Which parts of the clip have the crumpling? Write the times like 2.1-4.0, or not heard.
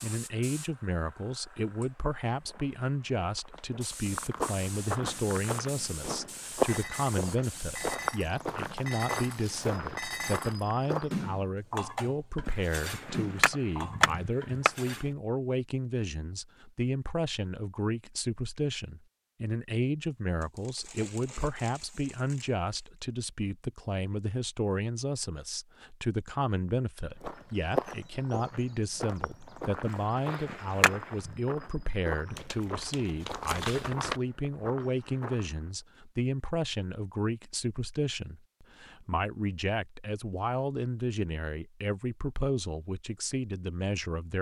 8.4-9.8, 20.4-22.9, 32.4-34.2.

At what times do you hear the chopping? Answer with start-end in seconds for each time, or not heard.
12.4-14.7, 29.9-31.4.